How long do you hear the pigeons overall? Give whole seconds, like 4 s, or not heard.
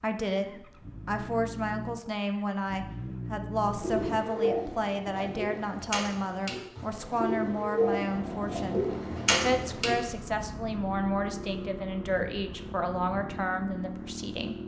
6 s.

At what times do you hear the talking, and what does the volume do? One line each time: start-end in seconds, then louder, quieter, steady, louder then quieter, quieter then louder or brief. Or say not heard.
0.0-14.6 steady.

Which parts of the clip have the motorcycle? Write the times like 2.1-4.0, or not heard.
0.2-4.2, 8.1-14.6.